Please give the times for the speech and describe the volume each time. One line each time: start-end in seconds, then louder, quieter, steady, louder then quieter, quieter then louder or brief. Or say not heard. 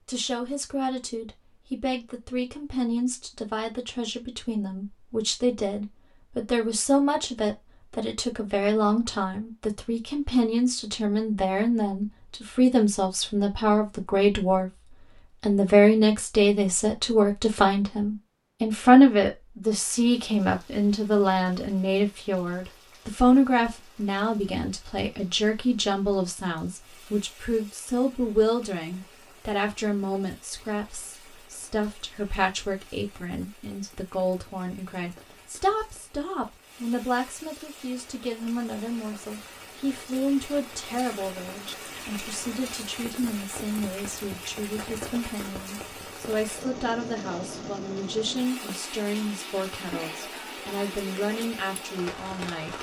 0.1-14.7 louder
15.4-52.7 quieter.